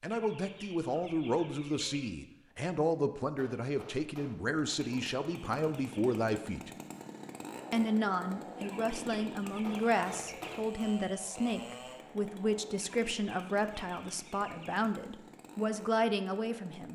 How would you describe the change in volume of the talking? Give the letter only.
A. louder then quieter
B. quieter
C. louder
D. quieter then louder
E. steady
E.